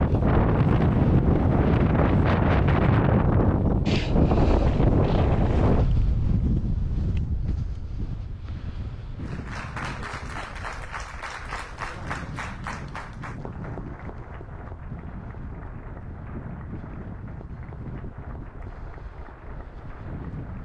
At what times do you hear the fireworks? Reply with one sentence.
The fireworks can't be heard in this clip.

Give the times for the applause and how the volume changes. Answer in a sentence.
The applause can be heard from 9.2 to 20.6 s, getting quieter.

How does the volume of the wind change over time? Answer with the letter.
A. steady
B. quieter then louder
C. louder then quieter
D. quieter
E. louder
D.